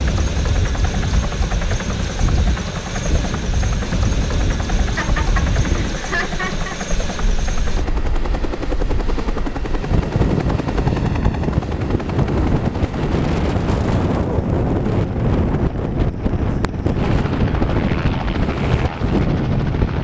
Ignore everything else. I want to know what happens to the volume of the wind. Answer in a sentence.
The loudness of the wind goes up.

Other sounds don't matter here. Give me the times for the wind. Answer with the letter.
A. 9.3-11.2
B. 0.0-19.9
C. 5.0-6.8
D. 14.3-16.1
B.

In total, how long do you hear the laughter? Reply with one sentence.
You can hear the laughter for 2 seconds altogether.